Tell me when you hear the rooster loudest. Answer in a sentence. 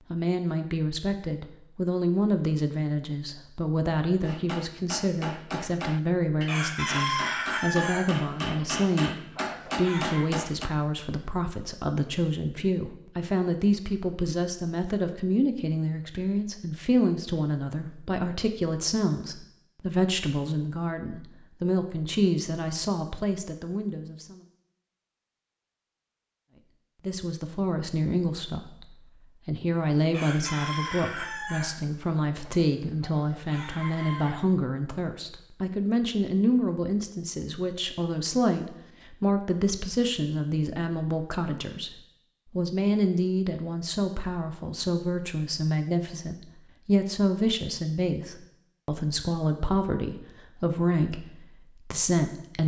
The loudest moment of the rooster is at 7 seconds.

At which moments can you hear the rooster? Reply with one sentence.
You can hear the rooster from 6.5 to 10.2 s and from 30.1 to 34.4 s.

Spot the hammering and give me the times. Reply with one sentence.
You can hear the hammering from 4.2 to 10.7 s.